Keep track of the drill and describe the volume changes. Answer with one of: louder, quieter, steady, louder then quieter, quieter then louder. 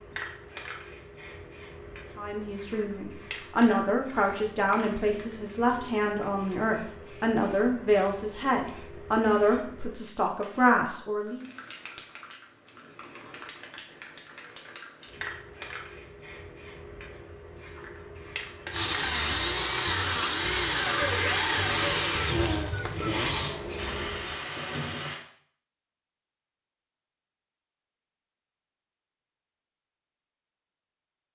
quieter.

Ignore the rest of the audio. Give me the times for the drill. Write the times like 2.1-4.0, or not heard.
18.7-25.2.